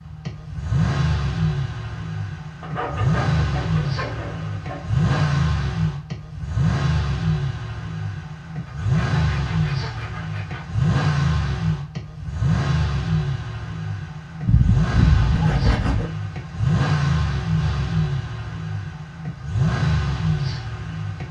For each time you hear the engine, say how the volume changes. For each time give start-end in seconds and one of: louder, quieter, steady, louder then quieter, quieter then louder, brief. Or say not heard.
0.0-21.2 steady.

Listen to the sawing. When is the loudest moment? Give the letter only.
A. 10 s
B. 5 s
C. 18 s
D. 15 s
D.